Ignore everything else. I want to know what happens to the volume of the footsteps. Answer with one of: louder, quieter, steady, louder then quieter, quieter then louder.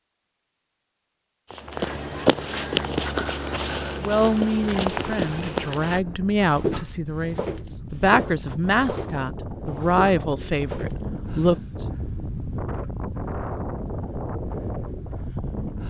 quieter.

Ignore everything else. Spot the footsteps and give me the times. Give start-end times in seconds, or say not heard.
1.5-11.7.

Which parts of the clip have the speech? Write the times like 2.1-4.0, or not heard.
4.0-11.8.